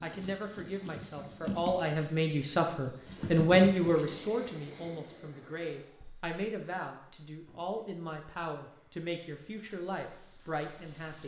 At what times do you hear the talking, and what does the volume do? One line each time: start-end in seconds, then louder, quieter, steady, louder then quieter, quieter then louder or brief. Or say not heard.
0.0-11.2 louder then quieter.